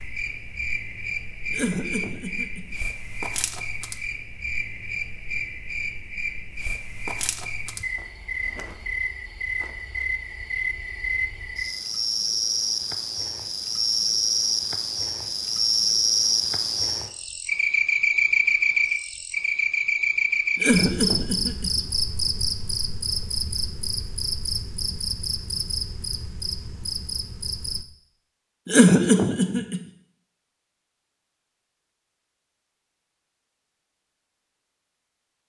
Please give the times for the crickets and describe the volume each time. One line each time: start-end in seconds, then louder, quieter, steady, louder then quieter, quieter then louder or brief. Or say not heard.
0.0-27.9 louder then quieter.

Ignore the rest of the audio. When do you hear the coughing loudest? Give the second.
29 s.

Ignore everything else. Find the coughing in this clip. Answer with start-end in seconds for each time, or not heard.
1.5-2.8, 20.6-21.8, 28.6-29.8.